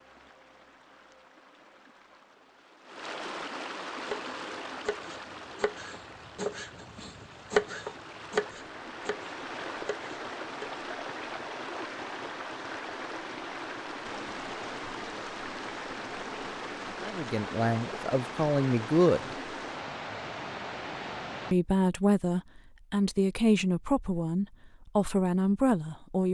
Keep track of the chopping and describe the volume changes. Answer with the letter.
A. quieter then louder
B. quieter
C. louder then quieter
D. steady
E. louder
C.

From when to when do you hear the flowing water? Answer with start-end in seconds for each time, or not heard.
0.0-21.6.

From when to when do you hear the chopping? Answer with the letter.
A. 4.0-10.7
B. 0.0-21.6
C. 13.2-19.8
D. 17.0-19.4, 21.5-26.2
A.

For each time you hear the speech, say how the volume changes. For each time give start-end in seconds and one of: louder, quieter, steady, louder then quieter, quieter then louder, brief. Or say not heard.
17.0-19.4 brief
21.5-26.2 steady.